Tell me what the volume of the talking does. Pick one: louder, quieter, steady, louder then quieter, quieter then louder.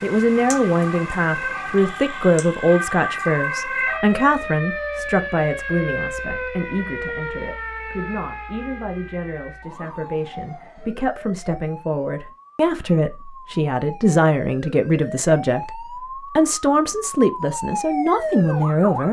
quieter then louder.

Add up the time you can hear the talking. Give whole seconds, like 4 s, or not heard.
19 s.